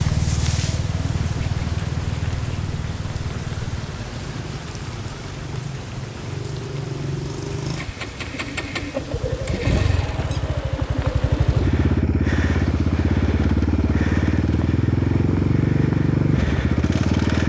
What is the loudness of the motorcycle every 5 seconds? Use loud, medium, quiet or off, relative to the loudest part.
medium, medium, loud, loud.